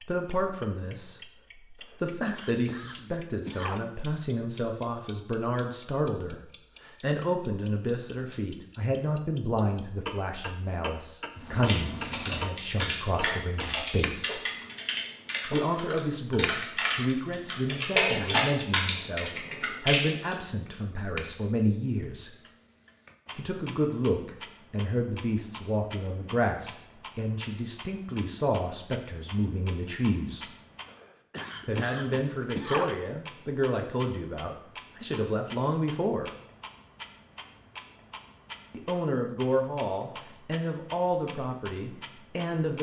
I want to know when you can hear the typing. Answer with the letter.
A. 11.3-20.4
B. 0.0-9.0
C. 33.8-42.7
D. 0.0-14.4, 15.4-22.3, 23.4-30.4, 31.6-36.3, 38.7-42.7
A.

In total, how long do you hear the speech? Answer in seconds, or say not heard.
37 s.